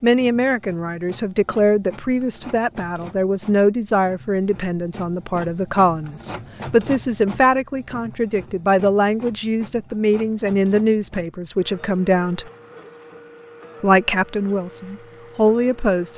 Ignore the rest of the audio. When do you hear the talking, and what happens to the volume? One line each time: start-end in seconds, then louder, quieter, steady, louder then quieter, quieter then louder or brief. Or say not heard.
0.0-12.4 steady
13.8-16.1 brief.